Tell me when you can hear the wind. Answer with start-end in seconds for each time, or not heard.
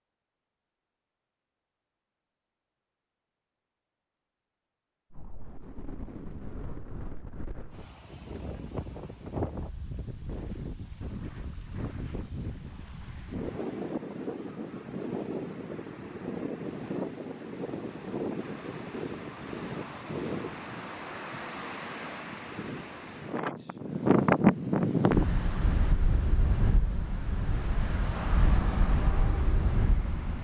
5.1-30.3.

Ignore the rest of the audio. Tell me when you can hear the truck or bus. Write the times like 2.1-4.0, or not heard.
28.1-30.3.